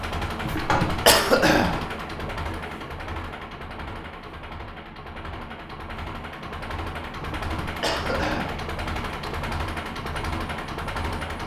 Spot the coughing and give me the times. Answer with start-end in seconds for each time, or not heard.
0.4-1.8, 7.2-8.6.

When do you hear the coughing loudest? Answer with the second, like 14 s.
1 s.